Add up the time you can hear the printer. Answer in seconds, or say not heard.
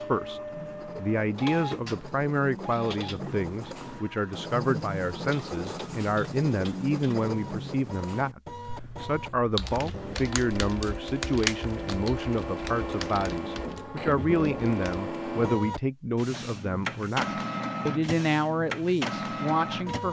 20 s.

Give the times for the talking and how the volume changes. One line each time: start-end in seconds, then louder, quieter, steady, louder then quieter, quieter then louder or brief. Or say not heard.
0.1-20.0 steady.